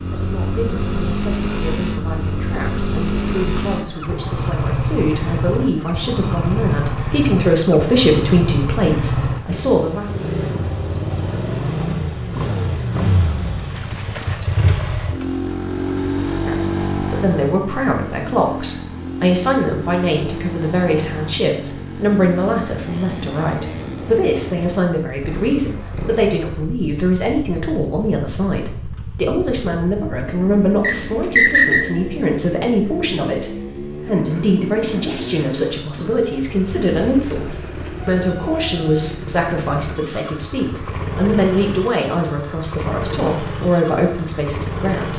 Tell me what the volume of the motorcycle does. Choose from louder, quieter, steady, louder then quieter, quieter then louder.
quieter.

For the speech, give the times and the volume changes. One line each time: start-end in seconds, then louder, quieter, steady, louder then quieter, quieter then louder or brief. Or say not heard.
0.0-10.2 louder
16.4-45.1 steady.